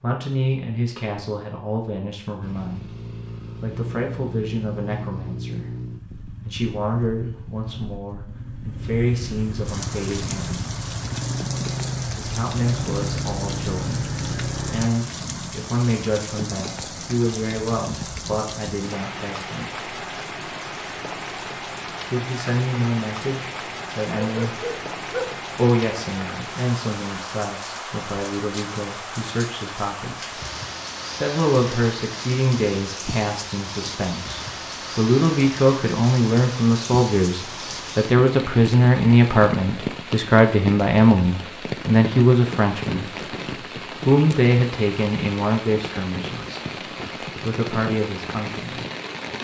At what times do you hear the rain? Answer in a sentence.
The rain can be heard from 9.7 to 49.3 s.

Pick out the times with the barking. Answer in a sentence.
The barking can be heard from 24.2 to 25.4 s.